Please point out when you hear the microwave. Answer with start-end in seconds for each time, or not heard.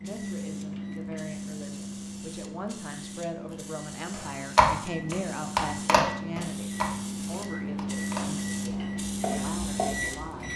0.0-10.5.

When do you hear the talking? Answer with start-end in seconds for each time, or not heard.
0.0-10.5.